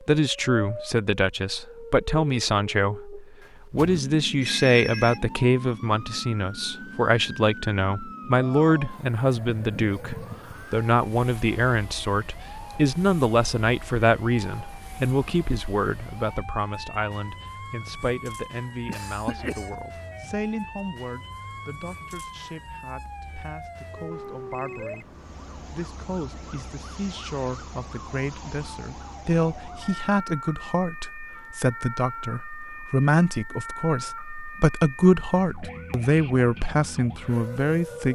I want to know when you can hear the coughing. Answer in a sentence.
The coughing can be heard from 18.9 to 19.8 s.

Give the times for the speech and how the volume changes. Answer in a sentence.
The speech can be heard from 0.1 to 38.1 s, getting quieter then louder.